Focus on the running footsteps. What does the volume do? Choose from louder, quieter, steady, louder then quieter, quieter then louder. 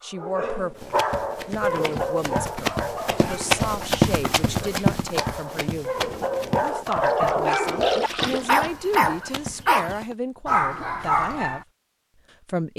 louder then quieter.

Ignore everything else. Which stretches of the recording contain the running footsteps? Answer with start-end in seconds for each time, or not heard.
0.8-10.2.